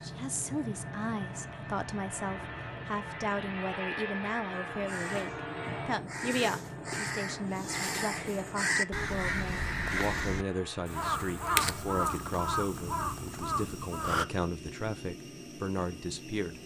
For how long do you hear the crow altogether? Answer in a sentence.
You can hear the crow for 10 seconds altogether.